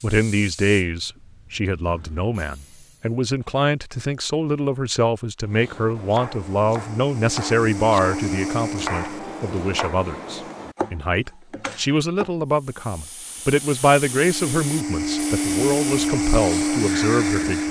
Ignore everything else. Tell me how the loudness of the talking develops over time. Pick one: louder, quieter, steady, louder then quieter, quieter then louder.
steady.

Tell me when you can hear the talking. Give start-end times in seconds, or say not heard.
0.0-17.6.